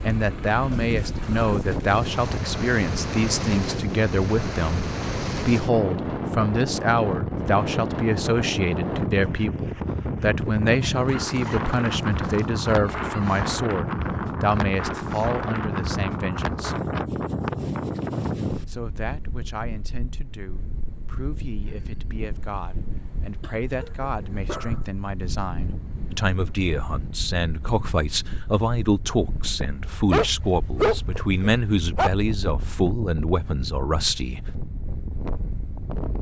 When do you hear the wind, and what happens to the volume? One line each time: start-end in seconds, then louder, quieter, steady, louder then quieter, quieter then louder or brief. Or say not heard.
0.0-36.1 quieter.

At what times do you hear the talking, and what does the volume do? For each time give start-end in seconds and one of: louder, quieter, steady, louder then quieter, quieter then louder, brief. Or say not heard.
0.0-16.8 steady
18.6-34.5 louder.